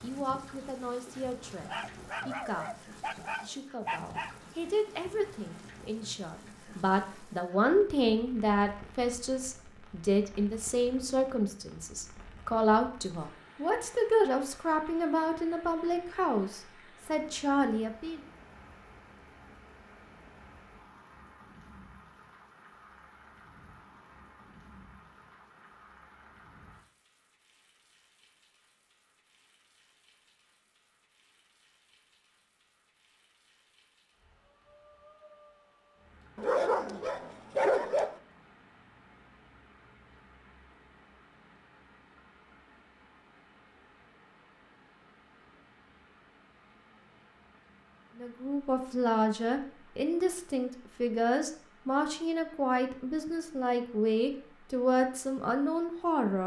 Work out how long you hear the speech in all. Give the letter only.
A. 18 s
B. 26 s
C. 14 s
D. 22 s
B.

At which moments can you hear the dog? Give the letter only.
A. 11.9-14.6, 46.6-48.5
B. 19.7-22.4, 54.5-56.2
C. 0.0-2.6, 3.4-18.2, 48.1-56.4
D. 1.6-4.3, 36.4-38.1
D.